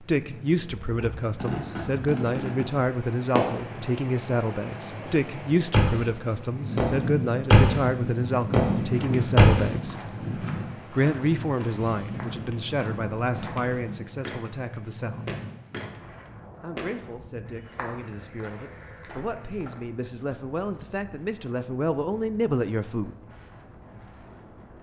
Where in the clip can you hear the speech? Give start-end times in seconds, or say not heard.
0.0-10.0, 10.9-15.3, 16.6-23.1.